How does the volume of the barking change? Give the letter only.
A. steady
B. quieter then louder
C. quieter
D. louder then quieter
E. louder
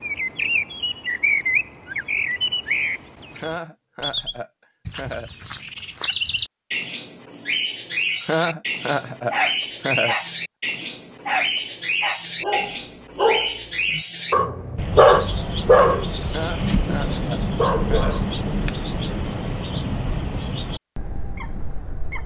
D.